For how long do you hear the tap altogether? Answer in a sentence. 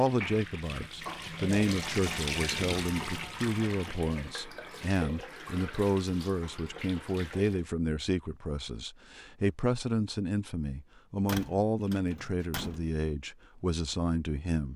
You can hear the tap for 8 seconds altogether.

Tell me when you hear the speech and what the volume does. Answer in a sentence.
You can hear the speech from 0.0 to 14.7 s, at a steady volume.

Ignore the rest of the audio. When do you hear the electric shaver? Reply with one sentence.
The electric shaver can't be heard in this clip.